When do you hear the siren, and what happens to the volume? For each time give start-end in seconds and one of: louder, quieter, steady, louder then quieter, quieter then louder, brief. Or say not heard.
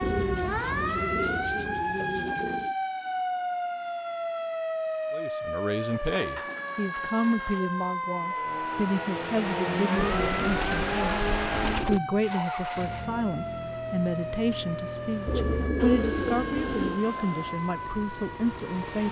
0.0-19.0 quieter.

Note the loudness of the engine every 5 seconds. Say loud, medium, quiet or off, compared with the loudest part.
off, loud, loud, medium.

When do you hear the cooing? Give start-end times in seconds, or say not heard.
0.0-2.8, 5.9-7.7, 9.9-12.0, 15.2-17.0.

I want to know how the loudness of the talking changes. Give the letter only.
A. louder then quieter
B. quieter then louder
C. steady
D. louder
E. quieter
C.